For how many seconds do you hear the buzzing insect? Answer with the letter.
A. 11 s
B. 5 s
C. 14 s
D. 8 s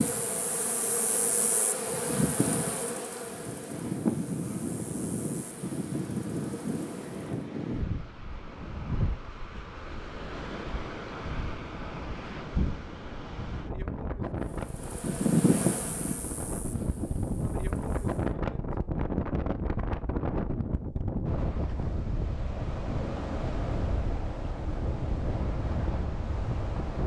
A.